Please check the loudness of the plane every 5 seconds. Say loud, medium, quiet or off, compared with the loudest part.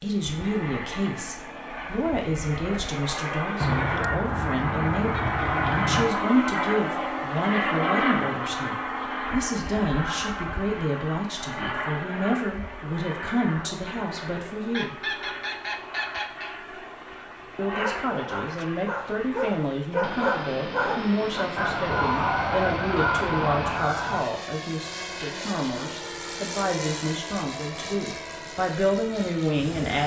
medium, loud, medium, medium, medium, medium.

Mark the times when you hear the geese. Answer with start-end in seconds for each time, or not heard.
3.6-6.1, 14.7-16.5, 21.6-24.2.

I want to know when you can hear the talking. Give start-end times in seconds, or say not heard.
0.0-14.9, 17.6-30.0.